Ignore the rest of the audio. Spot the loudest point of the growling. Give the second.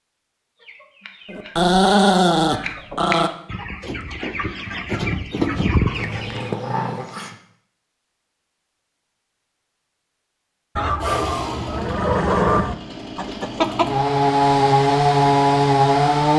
2 s.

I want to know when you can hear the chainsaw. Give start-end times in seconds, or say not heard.
11.0-16.3.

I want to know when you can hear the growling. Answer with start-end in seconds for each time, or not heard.
1.2-3.3, 5.9-7.3, 11.8-12.7.